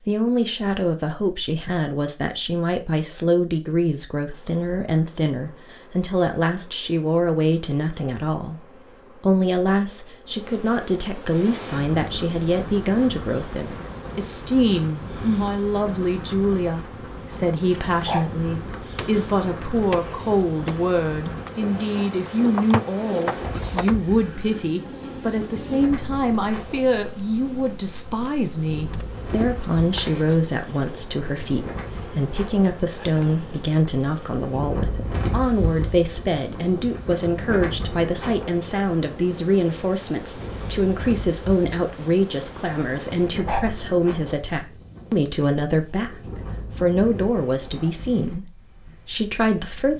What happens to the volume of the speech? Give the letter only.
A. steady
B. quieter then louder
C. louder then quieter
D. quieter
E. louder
A.